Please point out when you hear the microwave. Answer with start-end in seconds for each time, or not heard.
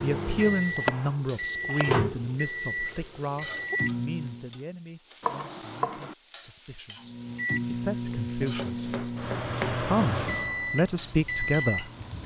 0.0-4.5, 7.0-12.2.